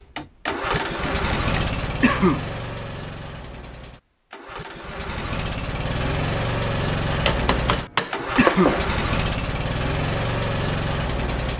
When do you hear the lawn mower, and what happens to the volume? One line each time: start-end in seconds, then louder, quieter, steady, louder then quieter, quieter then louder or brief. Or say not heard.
0.0-11.5 quieter then louder.